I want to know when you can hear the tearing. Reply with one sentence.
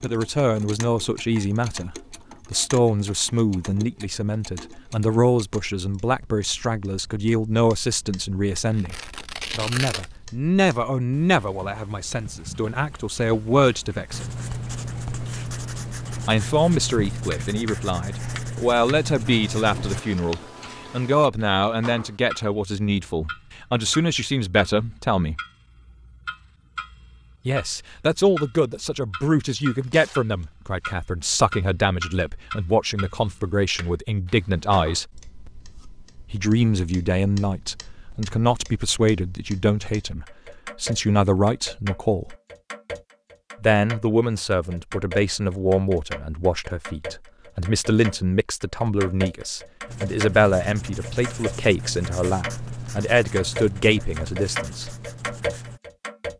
You can hear the tearing from 8.7 to 10.1 s and from 29.8 to 30.9 s.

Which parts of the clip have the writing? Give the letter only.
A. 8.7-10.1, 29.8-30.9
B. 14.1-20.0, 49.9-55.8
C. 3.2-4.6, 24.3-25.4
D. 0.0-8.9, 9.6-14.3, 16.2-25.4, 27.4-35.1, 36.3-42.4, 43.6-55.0
B.